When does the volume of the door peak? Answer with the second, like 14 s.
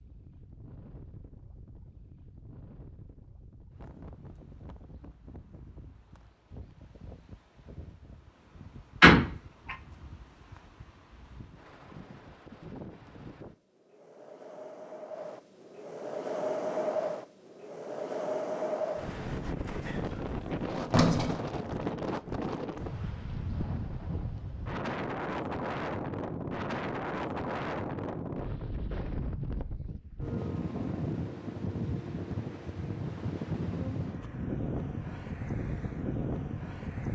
9 s.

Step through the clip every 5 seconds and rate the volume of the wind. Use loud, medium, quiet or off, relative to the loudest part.
quiet, quiet, quiet, loud, loud, loud, loud, loud.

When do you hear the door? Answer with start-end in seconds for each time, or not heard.
9.0-9.8, 19.8-21.4.